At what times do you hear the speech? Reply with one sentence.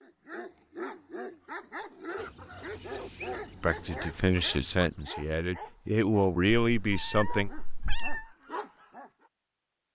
You can hear the speech from 3.6 to 7.5 s.